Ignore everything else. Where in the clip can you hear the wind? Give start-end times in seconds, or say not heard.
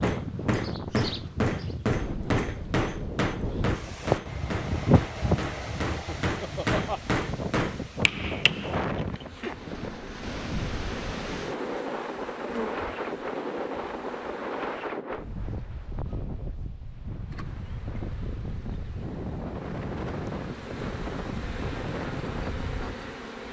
0.0-23.3.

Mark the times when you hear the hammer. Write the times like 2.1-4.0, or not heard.
0.0-9.2.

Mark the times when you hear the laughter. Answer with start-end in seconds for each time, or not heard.
5.9-7.1.